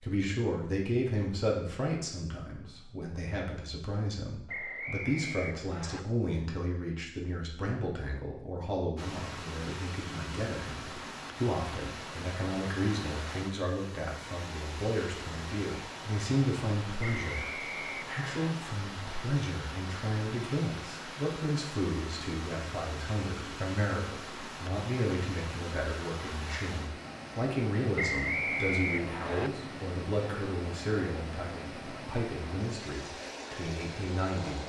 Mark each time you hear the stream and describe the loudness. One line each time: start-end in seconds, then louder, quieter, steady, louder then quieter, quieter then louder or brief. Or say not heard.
8.9-34.6 steady.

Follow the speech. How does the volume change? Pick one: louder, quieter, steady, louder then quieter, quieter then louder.
steady.